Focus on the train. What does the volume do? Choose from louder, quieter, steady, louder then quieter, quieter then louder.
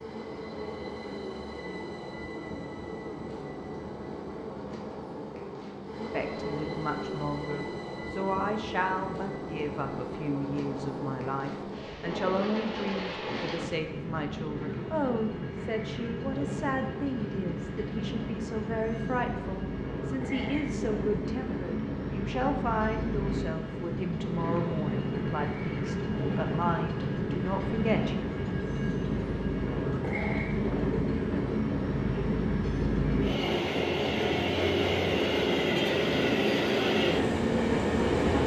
louder.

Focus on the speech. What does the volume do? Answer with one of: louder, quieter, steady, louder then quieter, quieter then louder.
steady.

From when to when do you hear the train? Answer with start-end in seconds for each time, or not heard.
0.0-38.4.